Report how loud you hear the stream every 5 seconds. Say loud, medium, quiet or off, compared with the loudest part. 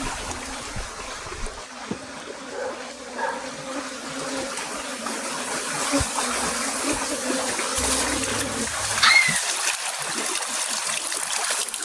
medium, loud, loud.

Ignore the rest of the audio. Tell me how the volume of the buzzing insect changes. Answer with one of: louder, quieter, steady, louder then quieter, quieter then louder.
louder.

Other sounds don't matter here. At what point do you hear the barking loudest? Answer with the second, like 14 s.
9 s.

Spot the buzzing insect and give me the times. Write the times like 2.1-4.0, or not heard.
0.0-8.7.